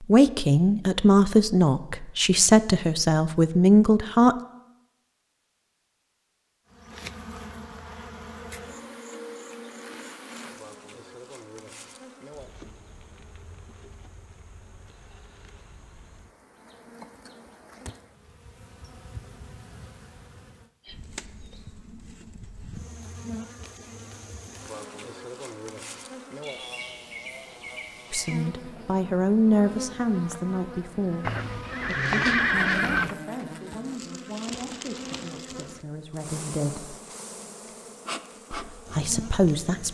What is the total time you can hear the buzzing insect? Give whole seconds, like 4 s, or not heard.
33 s.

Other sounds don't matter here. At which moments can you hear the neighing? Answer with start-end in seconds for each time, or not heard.
31.2-33.1.